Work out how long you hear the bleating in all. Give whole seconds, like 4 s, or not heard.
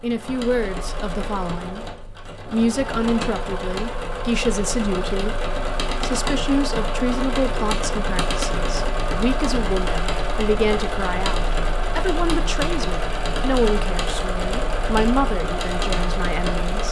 not heard.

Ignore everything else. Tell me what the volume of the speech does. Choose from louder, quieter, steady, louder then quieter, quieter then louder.
steady.